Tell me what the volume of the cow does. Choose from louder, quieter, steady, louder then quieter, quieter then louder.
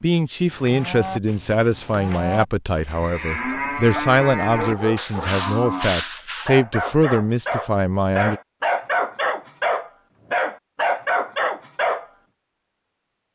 louder.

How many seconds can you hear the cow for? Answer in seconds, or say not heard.
6 s.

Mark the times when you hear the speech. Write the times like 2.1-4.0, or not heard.
0.0-8.4.